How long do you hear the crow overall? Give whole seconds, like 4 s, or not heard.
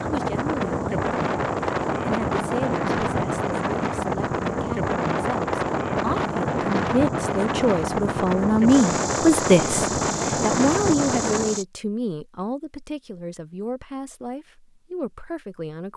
not heard.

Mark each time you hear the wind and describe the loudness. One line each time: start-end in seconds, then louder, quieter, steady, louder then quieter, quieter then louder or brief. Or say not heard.
0.0-11.6 steady.